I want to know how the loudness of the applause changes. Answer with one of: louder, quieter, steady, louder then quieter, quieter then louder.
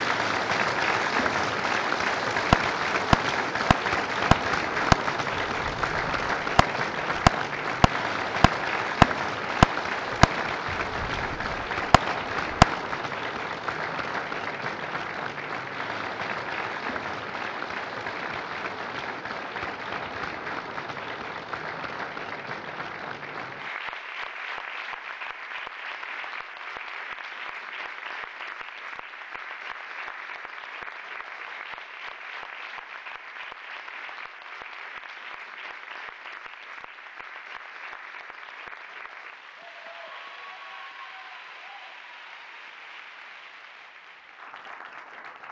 quieter.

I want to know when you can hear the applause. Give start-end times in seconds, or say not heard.
0.0-45.4.